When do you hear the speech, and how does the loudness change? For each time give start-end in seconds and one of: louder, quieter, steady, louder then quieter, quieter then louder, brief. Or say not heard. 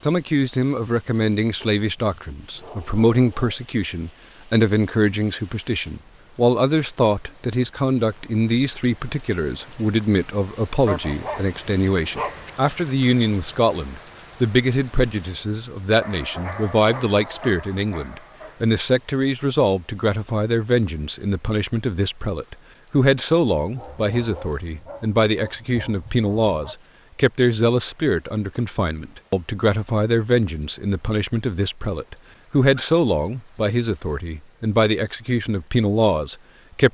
0.0-36.8 steady.